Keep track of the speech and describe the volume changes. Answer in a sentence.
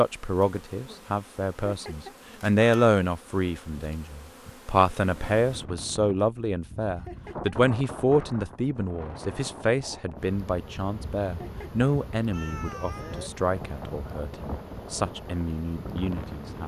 The loudness of the speech goes down.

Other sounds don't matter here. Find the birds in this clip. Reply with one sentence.
The birds can't be heard in this clip.